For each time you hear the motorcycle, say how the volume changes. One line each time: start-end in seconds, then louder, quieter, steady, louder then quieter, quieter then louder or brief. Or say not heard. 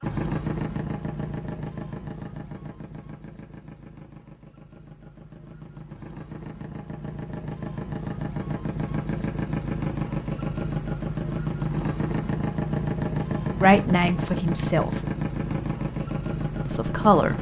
0.0-17.3 quieter then louder.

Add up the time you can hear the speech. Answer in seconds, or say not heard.
2 s.